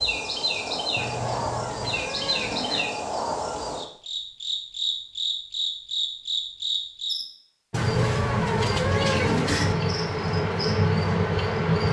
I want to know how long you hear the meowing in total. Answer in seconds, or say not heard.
4 s.